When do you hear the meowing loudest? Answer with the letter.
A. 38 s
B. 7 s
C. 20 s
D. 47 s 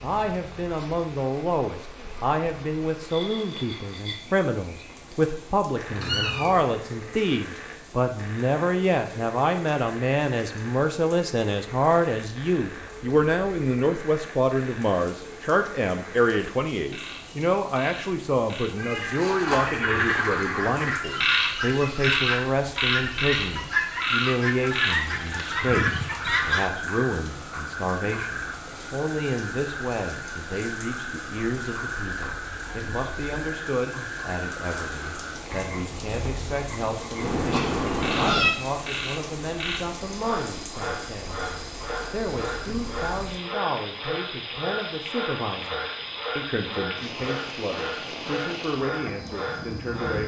A.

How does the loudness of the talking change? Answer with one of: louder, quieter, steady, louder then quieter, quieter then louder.
quieter.